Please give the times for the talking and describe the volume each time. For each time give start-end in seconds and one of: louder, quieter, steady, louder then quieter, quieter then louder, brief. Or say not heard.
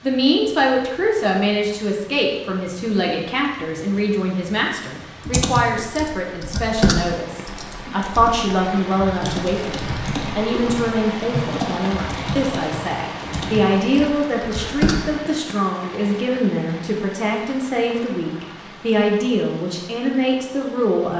0.0-21.1 steady.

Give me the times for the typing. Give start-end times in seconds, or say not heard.
5.2-15.1.